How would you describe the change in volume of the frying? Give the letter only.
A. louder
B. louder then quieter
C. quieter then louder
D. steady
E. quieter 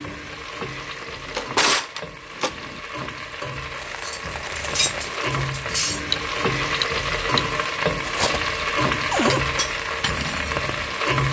A.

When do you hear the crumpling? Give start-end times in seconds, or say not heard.
3.8-5.5.